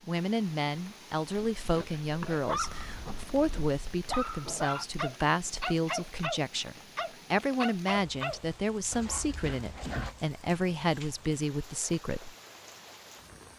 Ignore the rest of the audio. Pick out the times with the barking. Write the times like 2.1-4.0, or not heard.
1.6-10.2.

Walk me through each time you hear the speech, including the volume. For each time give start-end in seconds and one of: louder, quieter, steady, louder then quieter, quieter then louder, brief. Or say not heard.
0.1-12.3 steady.